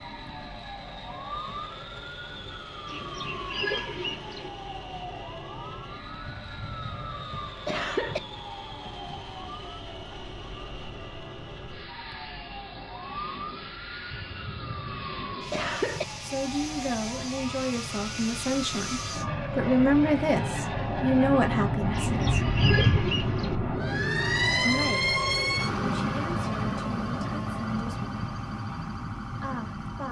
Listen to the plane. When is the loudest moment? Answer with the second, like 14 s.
22 s.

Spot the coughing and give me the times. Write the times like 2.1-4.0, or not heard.
6.2-8.2, 14.1-16.1, 22.2-23.1.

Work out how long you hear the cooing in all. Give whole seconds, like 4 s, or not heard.
3 s.